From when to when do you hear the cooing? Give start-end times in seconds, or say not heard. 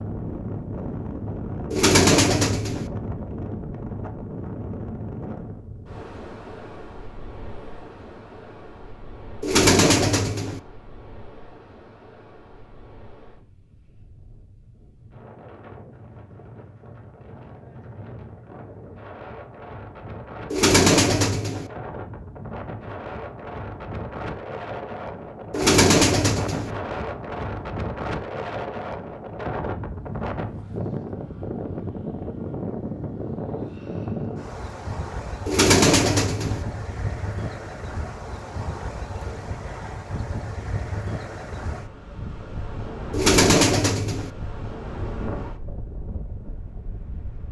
1.7-2.9, 9.4-10.6, 20.5-21.7, 25.5-26.7, 35.5-36.6, 43.1-44.3.